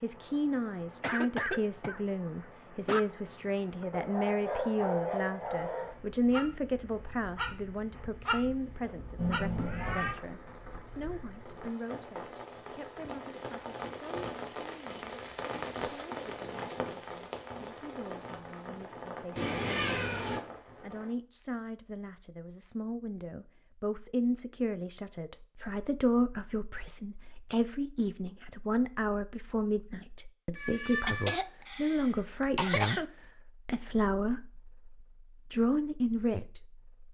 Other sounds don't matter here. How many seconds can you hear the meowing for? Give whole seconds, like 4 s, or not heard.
3 s.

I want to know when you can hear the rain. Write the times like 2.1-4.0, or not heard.
0.0-21.1.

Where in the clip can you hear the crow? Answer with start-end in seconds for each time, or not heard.
not heard.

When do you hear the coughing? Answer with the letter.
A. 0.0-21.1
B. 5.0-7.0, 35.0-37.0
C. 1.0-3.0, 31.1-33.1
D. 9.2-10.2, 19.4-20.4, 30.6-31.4
C.